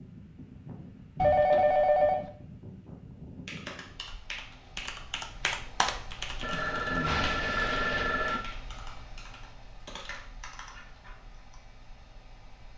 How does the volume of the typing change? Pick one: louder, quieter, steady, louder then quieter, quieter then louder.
louder then quieter.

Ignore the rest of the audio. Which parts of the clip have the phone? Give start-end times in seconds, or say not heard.
1.1-2.2, 6.4-8.4.